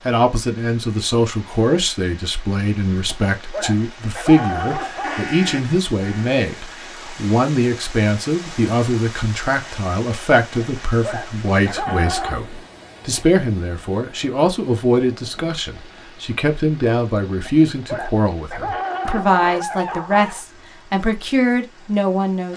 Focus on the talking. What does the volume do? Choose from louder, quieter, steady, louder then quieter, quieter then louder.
steady.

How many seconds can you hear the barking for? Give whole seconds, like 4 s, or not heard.
7 s.